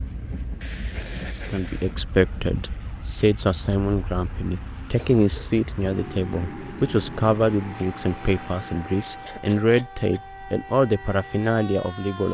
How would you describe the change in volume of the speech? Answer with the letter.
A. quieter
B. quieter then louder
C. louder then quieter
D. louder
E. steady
E.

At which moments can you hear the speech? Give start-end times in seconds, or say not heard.
1.4-12.2.